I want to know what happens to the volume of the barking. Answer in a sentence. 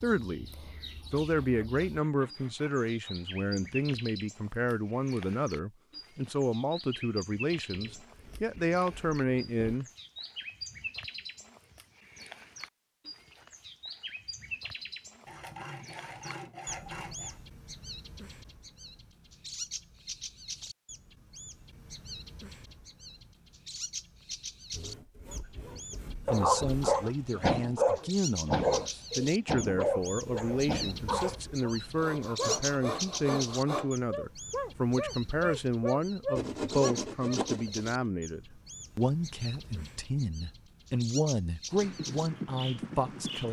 The volume of the barking goes down.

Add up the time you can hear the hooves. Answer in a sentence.
You can hear the hooves for 2 seconds altogether.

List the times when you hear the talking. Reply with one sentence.
The talking can be heard from 0.0 to 9.8 s and from 26.2 to 43.4 s.